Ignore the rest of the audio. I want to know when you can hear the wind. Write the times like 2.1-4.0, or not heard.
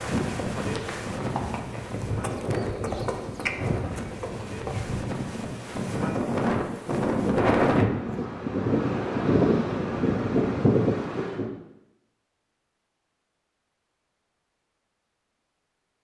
0.0-11.5.